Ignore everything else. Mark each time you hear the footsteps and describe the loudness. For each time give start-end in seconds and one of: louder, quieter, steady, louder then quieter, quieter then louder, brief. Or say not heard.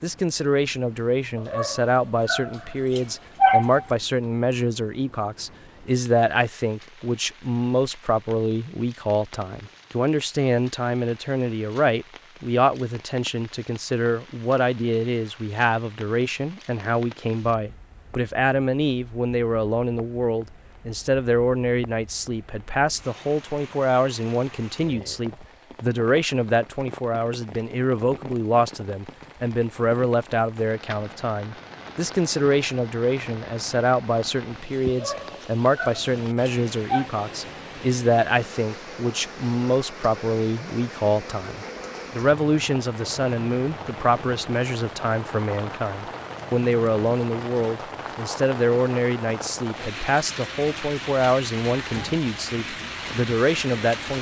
not heard.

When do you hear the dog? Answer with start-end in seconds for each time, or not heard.
1.4-3.9, 34.9-37.1.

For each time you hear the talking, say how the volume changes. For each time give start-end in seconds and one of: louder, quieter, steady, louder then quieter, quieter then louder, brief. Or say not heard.
0.0-54.1 steady.